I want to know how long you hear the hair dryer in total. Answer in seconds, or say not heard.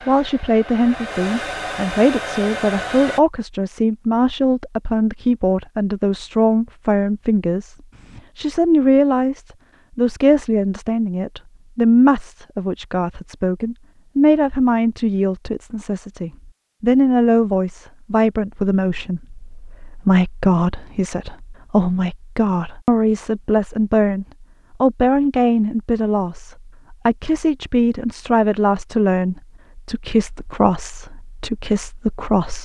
3 s.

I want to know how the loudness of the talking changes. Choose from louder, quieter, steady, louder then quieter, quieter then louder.
steady.